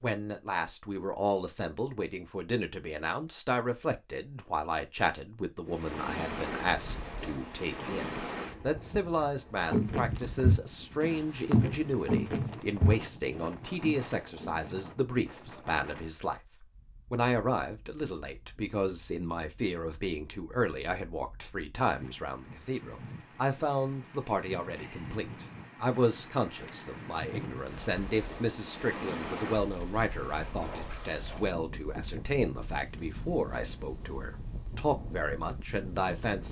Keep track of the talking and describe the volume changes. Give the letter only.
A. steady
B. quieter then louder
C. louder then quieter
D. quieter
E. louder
A.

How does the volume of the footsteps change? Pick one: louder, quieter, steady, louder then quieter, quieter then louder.
quieter.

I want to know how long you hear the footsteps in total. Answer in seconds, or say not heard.
5 s.